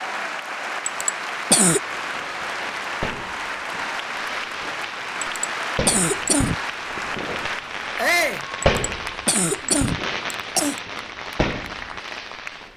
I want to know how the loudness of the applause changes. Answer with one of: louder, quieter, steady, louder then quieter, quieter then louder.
quieter.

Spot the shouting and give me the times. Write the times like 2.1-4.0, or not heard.
8.0-8.4.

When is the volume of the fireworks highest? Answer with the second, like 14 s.
9 s.